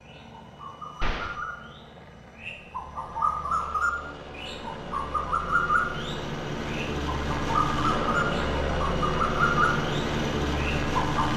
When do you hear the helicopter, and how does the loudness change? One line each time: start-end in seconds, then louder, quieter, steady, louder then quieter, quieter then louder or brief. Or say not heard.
0.0-11.3 louder.